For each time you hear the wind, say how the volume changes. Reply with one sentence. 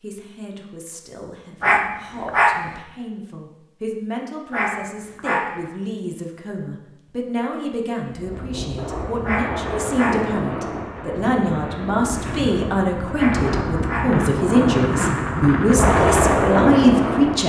You can hear the wind from 8.1 to 17.4 s, getting louder.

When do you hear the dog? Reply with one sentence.
The dog can be heard from 1.6 to 2.7 s, from 4.5 to 5.6 s, from 9.2 to 10.3 s and from 13.2 to 14.2 s.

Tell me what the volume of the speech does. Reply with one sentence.
The volume of the speech goes up.